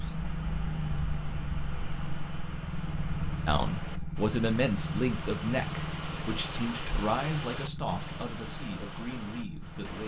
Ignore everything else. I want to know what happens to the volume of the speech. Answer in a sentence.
The loudness of the speech goes down.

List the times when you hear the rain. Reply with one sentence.
The rain can be heard from 0.0 to 10.0 s.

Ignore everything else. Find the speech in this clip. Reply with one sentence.
The speech can be heard from 3.5 to 10.0 s.